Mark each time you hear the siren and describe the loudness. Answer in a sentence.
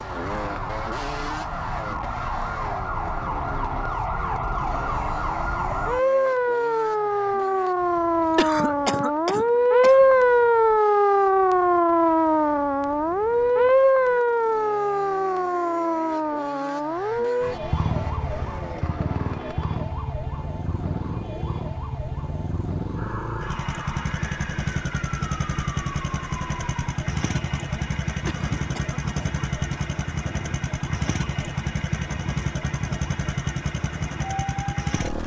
The siren can be heard from 0.0 to 35.2 s, getting louder then quieter.